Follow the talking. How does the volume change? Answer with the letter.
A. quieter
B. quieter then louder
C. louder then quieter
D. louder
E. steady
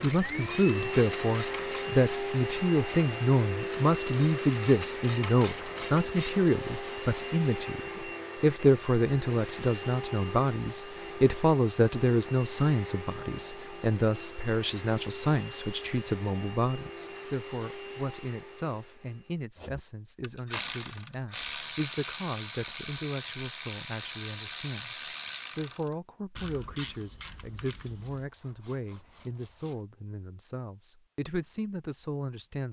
A.